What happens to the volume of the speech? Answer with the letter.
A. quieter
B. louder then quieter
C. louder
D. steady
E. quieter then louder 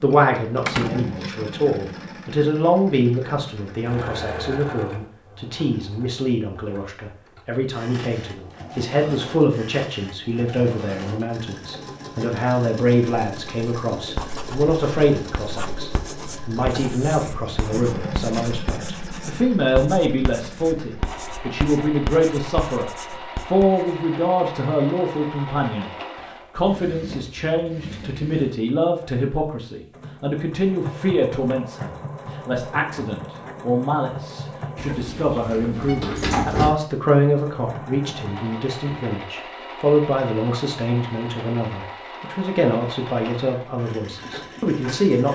D.